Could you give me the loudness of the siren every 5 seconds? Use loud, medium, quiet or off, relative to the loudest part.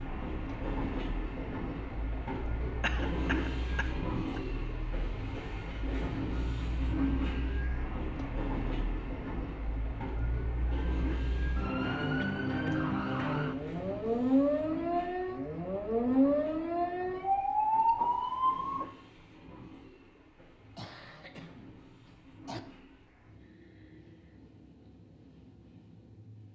quiet, quiet, loud, loud, off, off.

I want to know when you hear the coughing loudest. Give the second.
3 s.